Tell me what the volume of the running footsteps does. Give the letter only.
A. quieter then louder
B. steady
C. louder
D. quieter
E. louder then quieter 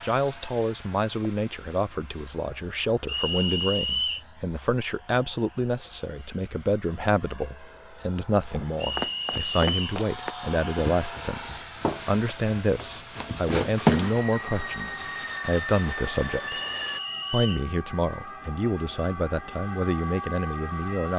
A.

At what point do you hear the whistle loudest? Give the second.
4 s.